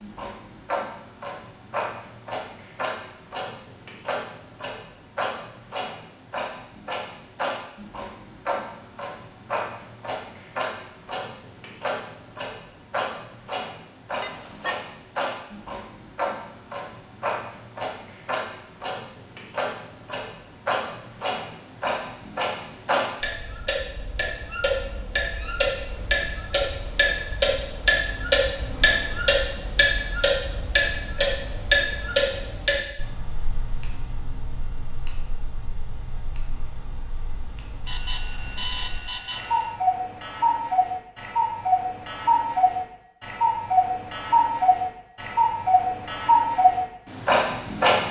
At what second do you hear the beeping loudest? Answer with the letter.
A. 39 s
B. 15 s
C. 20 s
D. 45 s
A.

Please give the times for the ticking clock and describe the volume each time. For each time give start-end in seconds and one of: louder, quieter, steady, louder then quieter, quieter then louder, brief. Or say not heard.
0.0-48.0 louder.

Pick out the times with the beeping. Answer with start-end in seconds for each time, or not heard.
14.2-14.8, 37.9-39.8.